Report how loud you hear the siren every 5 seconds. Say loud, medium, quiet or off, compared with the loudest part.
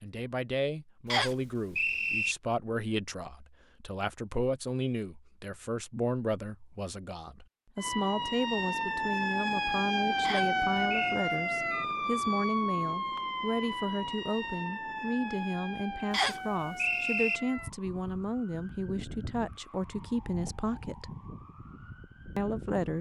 off, loud, loud, medium, quiet.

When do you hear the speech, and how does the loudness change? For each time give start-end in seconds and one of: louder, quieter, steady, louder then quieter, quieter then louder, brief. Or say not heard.
0.0-21.1 steady
22.4-22.9 brief.